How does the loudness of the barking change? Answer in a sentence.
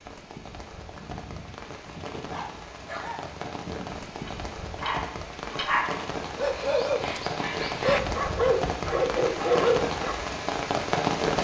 The volume of the barking goes up.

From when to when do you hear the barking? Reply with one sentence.
The barking can be heard from 1.0 to 10.2 s.